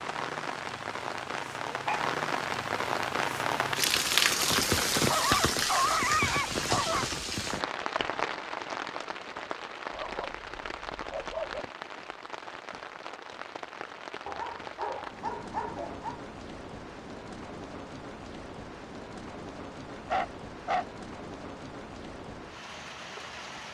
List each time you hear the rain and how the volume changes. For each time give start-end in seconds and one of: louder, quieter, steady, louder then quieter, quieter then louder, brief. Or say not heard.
0.0-23.7 quieter.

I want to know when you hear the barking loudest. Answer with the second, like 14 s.
6 s.